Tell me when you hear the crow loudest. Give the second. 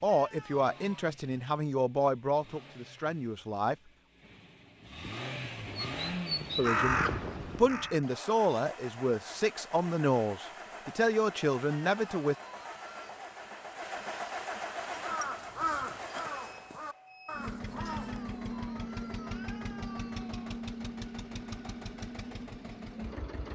7 s.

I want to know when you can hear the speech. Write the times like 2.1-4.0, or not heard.
0.0-3.8, 6.5-12.3.